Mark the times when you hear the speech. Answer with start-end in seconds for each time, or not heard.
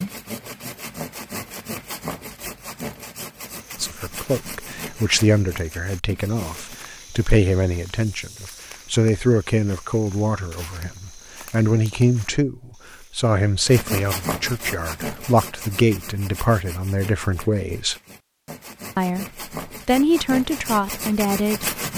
3.8-17.9, 18.9-21.7.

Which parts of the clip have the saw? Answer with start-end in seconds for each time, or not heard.
0.0-6.8, 13.7-21.9.